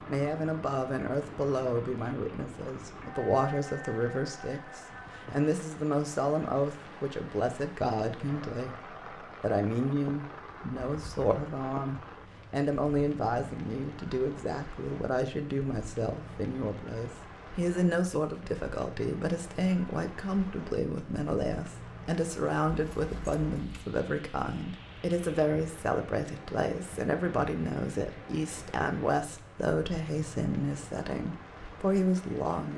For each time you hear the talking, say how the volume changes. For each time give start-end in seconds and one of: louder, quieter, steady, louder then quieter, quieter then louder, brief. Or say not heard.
0.0-32.7 steady.